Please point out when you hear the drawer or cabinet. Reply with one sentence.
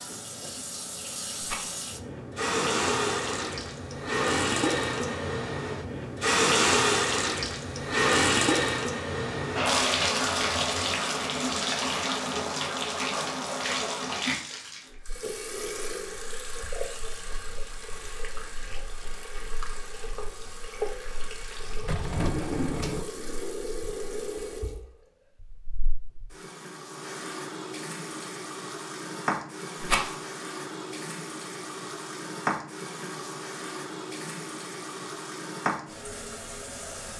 You can hear the drawer or cabinet from 21.8 to 23.1 s.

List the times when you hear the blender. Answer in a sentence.
The blender can't be heard in this clip.